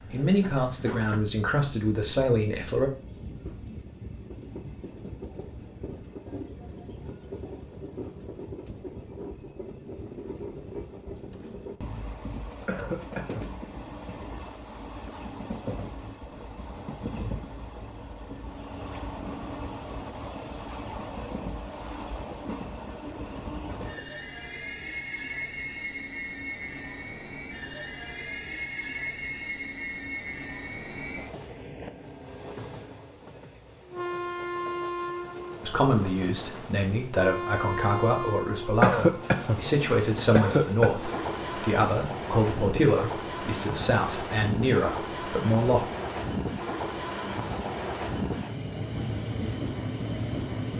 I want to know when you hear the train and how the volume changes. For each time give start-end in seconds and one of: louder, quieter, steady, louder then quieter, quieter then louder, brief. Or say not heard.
0.0-50.7 louder.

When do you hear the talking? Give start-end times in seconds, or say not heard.
0.0-2.9, 35.6-45.9.